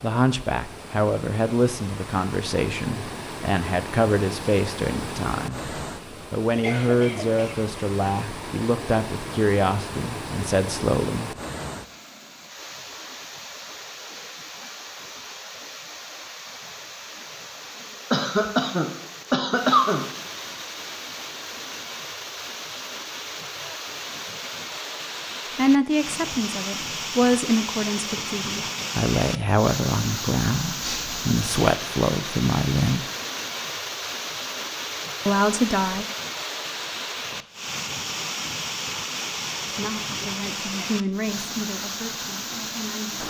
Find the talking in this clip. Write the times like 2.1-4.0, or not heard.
0.0-11.3, 25.6-33.0, 35.2-36.0, 39.8-43.2.